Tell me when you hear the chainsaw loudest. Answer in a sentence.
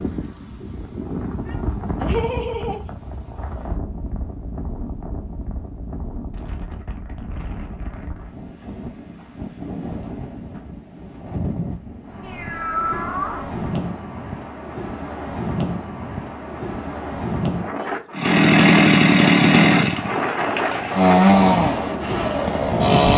The volume of the chainsaw peaks at 19 seconds.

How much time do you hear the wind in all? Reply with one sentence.
You can hear the wind for 23 seconds altogether.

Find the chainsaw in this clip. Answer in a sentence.
The chainsaw can be heard from 18.1 to 23.1 s.